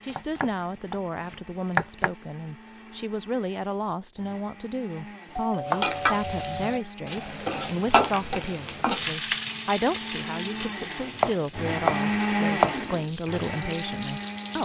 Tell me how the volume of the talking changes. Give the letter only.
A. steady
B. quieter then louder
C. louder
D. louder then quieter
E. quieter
A.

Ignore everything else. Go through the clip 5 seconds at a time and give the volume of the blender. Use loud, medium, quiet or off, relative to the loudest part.
quiet, quiet, loud.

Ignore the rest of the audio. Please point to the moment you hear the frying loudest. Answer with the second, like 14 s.
8 s.